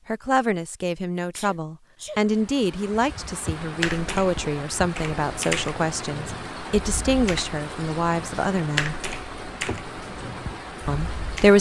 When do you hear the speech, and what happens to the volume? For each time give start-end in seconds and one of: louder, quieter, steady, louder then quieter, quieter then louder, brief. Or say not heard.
0.1-8.9 steady
10.8-11.5 brief.